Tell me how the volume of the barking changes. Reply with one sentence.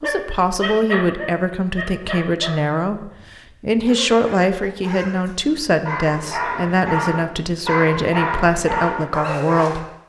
The loudness of the barking goes down, then up.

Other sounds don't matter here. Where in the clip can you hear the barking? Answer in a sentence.
You can hear the barking from 0.0 to 9.8 s.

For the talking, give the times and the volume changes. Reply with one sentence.
You can hear the talking from 0.0 to 9.8 s, at a steady volume.